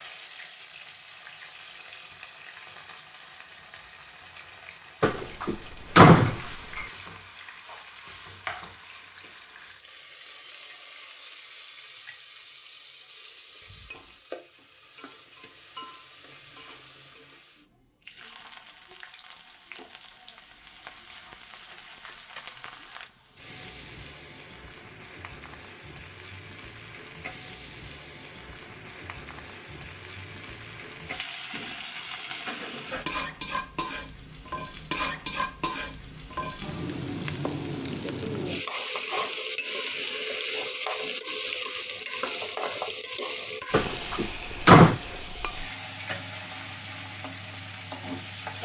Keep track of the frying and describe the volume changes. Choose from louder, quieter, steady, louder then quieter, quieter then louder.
louder.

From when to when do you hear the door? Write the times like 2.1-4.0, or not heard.
5.0-6.8, 43.7-45.0.